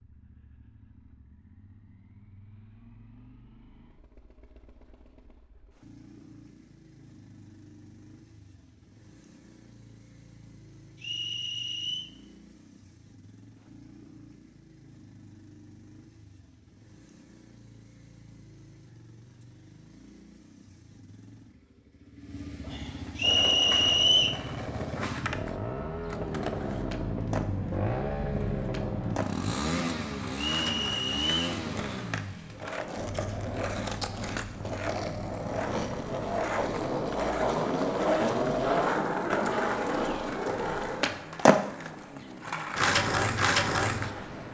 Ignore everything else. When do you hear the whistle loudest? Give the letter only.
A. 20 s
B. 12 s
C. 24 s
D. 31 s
C.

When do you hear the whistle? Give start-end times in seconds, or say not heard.
11.0-12.1, 23.1-24.4, 30.4-31.6.